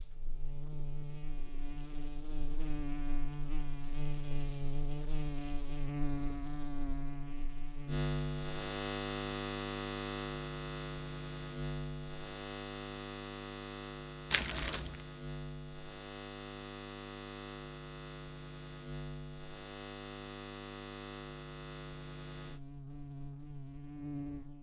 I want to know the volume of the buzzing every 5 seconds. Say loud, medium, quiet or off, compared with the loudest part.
medium, loud, loud, medium, medium.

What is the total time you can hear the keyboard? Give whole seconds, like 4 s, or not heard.
not heard.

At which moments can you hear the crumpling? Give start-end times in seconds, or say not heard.
14.3-15.0.